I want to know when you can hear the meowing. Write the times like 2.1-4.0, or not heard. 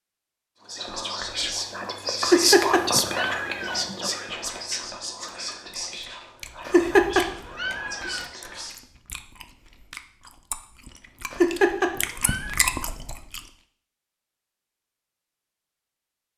2.2-3.9, 6.7-8.2, 11.3-12.6.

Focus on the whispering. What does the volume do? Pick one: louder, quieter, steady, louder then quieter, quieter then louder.
quieter.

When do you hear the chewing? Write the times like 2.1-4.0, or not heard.
5.3-13.4.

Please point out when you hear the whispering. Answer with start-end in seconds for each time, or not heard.
0.7-8.8.